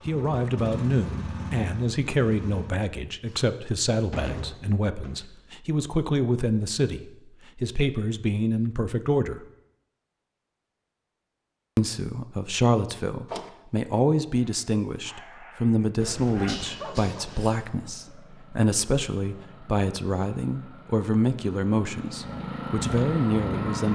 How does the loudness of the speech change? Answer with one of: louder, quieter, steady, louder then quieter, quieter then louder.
steady.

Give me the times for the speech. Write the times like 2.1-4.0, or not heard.
0.1-9.4, 11.8-23.8.